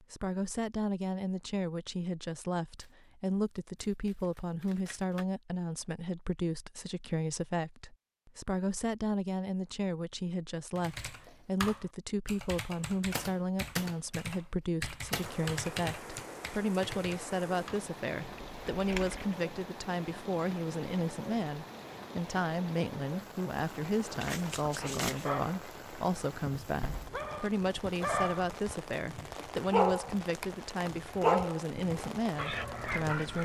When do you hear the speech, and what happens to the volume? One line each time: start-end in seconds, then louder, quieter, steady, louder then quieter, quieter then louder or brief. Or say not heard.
0.0-33.4 steady.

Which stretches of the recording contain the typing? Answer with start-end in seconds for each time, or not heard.
10.8-19.4.